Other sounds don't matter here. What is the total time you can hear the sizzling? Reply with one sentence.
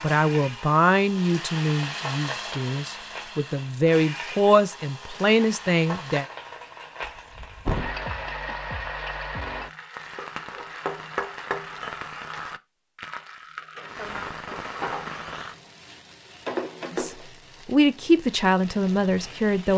The sizzling can be heard for 20 seconds in total.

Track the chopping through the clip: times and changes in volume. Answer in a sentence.
The chopping can't be heard in this clip.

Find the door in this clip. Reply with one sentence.
The door can be heard from 7.0 to 8.0 s.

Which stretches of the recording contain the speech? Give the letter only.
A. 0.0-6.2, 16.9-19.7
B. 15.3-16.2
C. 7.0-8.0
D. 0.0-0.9
A.